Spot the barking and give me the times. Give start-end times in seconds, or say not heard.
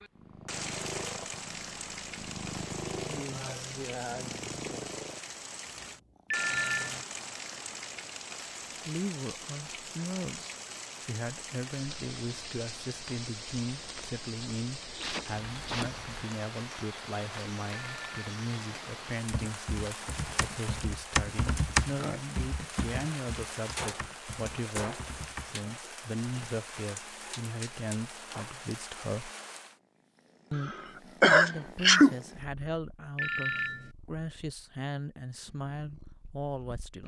not heard.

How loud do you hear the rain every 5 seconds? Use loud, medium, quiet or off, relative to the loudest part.
loud, loud, loud, loud, loud, loud, off, off.